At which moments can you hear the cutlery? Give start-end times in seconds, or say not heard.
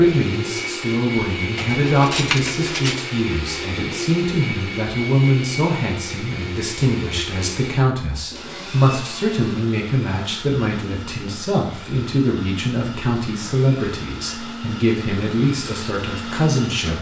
1.6-3.0.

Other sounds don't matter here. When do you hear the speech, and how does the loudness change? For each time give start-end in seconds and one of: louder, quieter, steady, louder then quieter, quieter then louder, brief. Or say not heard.
0.0-16.9 steady.